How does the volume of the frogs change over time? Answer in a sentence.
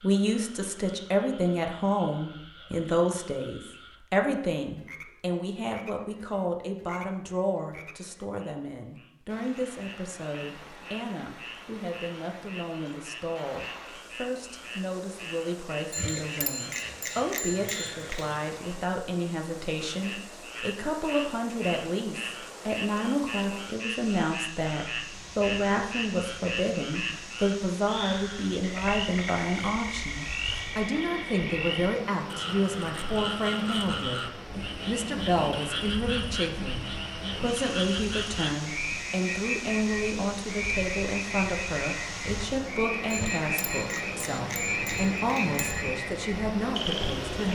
The loudness of the frogs goes up.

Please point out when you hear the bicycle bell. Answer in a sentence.
You can hear the bicycle bell from 15.9 to 18.4 s and from 43.1 to 45.9 s.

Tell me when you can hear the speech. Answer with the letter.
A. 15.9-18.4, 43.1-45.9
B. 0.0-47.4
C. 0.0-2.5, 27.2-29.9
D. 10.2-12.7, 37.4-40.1
B.